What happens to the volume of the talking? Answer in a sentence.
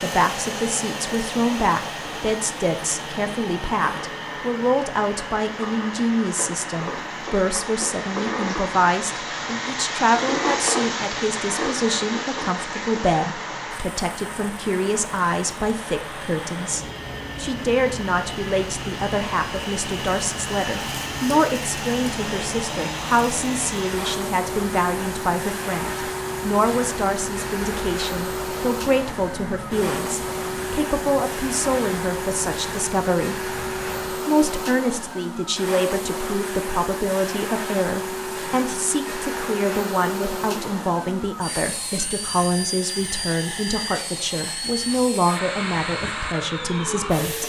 The loudness of the talking stays about the same.